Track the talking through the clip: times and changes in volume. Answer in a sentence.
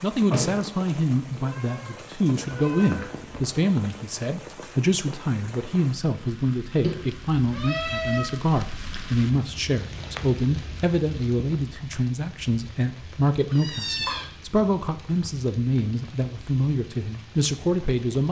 The talking can be heard from 0.0 to 18.2 s, at a steady volume.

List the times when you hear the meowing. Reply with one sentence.
The meowing can be heard from 1.2 to 3.4 s, from 6.8 to 8.3 s and from 13.3 to 14.2 s.